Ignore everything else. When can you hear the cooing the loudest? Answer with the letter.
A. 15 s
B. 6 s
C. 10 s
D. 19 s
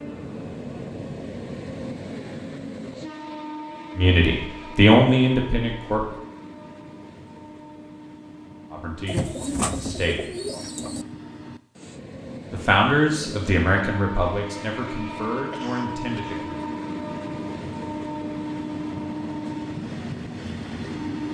C.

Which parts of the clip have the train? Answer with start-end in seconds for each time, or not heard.
0.0-21.2.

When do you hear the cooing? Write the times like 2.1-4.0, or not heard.
9.1-11.1.